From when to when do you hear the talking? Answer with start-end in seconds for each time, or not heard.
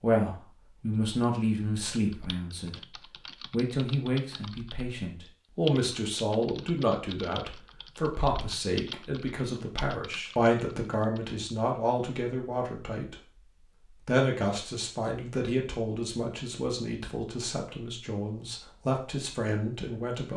0.0-20.3.